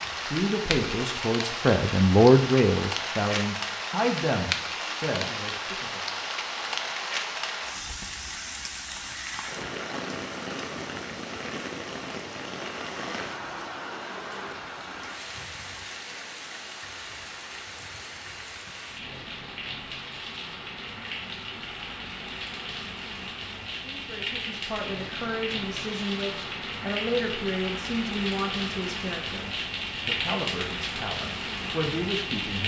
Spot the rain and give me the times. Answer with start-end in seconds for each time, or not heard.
0.0-32.6.